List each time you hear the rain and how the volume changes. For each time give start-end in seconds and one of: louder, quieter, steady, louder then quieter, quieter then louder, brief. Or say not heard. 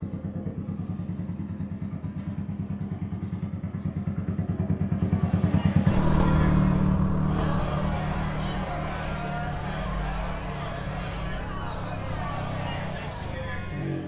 not heard.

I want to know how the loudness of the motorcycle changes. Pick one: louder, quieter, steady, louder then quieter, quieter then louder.
louder then quieter.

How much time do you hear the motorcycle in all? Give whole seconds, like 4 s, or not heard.
14 s.